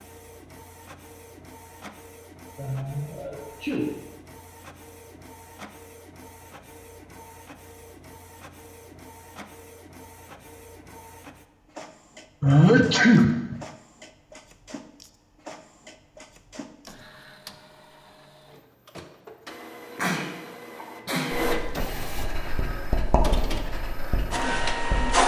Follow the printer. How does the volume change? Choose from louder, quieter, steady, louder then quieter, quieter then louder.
louder.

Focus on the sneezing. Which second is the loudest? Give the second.
13 s.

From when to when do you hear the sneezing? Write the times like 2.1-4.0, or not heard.
2.5-3.9, 12.4-13.6, 19.9-21.4.